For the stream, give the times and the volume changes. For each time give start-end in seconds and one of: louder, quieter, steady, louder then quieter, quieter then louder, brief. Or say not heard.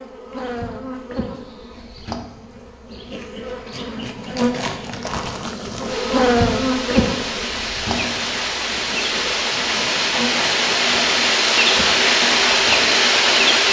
5.8-13.6 louder.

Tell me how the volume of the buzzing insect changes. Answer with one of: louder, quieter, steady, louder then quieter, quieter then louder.
louder then quieter.